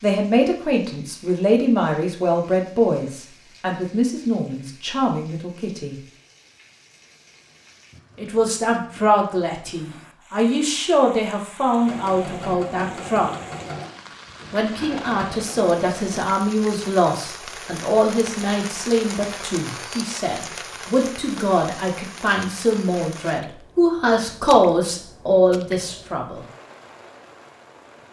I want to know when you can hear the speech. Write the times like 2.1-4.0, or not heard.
0.0-6.0, 8.2-13.4, 14.5-26.4.